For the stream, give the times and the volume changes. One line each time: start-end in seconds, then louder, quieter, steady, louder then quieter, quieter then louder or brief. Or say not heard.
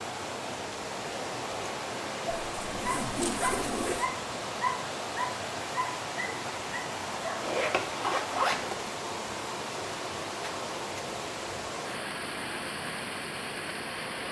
0.0-14.2 steady.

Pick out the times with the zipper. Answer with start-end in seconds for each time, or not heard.
2.5-4.1, 7.4-8.8.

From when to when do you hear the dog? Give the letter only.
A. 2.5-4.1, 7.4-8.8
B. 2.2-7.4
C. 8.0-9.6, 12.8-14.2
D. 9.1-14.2
B.